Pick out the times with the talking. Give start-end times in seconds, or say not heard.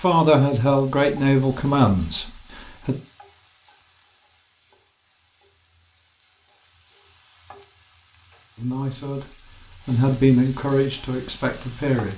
0.0-3.0, 8.6-12.1.